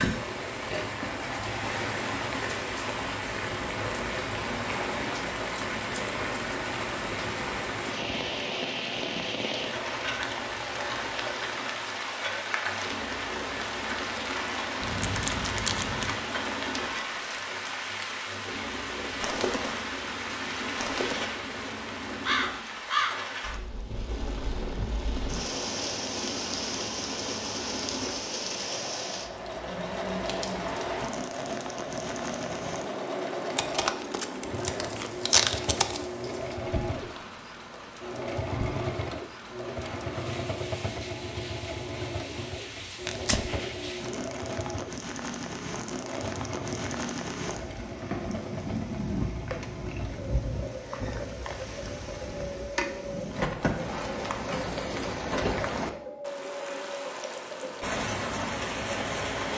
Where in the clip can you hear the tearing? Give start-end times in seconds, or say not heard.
14.8-16.1, 33.5-36.0, 43.0-43.5.